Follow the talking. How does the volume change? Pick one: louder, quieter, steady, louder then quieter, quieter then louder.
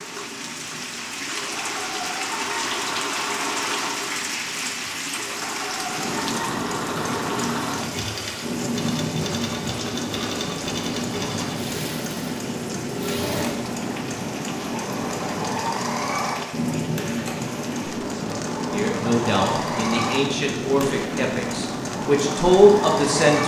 quieter then louder.